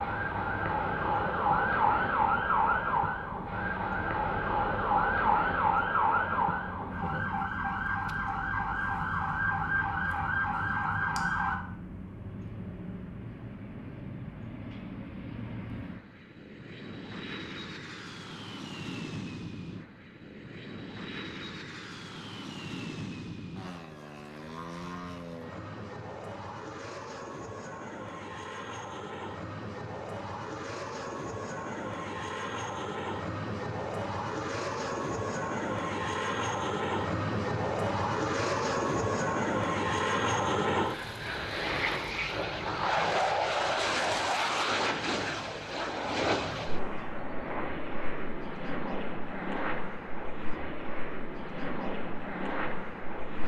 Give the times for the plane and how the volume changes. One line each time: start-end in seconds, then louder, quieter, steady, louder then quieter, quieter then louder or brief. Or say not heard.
0.0-53.4 louder.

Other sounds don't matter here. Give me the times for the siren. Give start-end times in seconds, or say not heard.
0.0-11.6.